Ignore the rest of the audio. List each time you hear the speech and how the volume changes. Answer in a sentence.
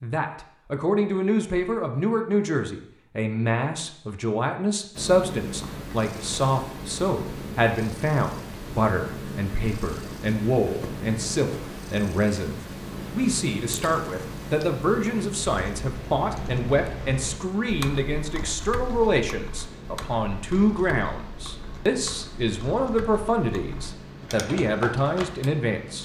You can hear the speech from 0.0 to 26.0 s, at a steady volume.